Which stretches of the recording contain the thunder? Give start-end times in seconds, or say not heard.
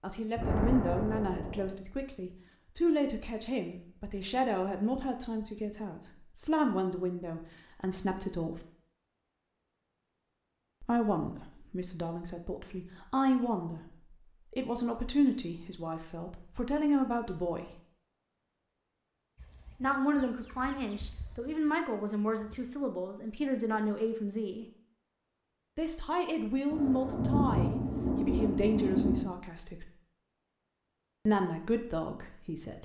0.3-1.7, 26.7-29.2.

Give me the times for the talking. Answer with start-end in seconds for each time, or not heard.
0.0-8.6, 10.8-13.8, 14.5-17.6, 19.8-24.6, 25.8-29.9, 31.2-32.8.